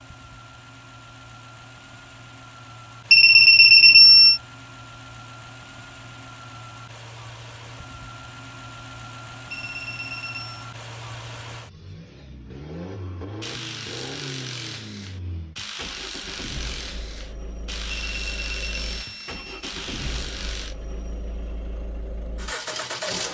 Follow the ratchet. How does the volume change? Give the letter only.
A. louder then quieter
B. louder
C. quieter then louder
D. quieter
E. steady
E.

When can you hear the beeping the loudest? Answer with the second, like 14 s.
4 s.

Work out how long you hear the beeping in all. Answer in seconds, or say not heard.
4 s.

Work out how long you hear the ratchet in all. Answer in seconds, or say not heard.
7 s.